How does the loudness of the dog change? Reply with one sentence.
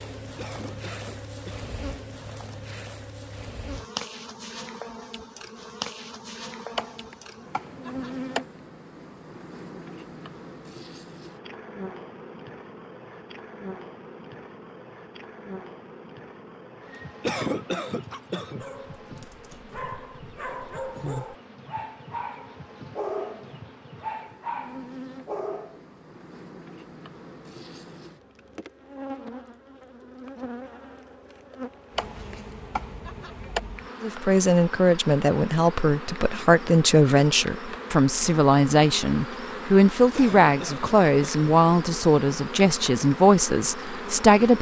The loudness of the dog goes up.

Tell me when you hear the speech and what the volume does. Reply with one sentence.
You can hear the speech from 34.0 to 44.5 s, at a steady volume.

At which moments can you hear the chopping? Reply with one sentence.
You can hear the chopping from 6.8 to 8.4 s and from 31.9 to 33.6 s.